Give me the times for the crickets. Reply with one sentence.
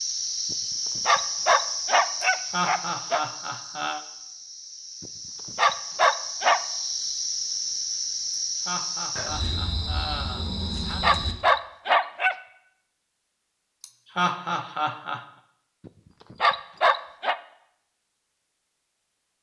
You can hear the crickets from 0.0 to 11.3 s.